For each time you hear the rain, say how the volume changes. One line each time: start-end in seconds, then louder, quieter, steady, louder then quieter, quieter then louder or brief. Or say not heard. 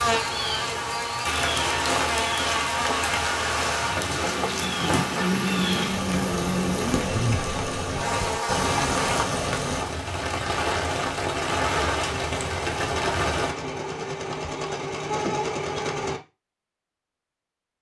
0.0-13.6 steady.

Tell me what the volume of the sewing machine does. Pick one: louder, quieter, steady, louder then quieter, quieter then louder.
louder.